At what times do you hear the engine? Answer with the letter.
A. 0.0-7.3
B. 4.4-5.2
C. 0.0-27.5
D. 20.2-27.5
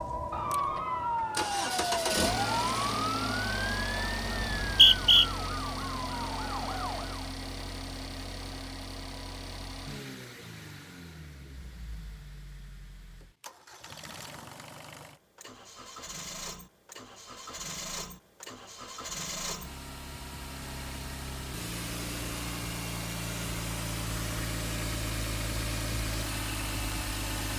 C.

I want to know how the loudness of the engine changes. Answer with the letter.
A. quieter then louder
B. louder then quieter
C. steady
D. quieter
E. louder
A.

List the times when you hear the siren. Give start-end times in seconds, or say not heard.
0.0-7.3.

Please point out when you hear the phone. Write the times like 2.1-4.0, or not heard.
not heard.